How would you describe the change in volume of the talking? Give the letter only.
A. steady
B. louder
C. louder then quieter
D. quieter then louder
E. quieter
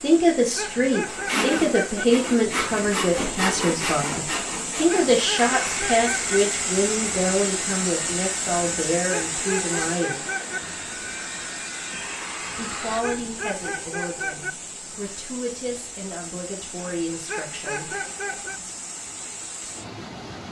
E.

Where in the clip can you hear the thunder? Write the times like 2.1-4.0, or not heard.
not heard.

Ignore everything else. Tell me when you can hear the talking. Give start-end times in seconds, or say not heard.
0.0-10.2, 12.6-17.9.